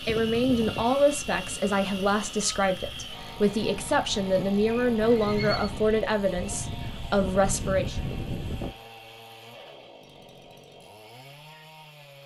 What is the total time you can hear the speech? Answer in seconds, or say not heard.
8 s.